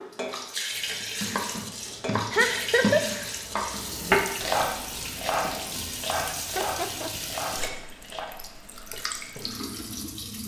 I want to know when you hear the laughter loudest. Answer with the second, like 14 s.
3 s.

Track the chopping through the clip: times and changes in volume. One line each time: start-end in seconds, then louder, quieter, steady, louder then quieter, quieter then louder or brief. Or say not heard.
0.7-8.3 louder then quieter.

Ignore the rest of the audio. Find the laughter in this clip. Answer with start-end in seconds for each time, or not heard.
2.3-3.0, 6.3-7.1.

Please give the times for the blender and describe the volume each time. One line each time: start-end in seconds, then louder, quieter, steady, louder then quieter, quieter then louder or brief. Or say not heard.
not heard.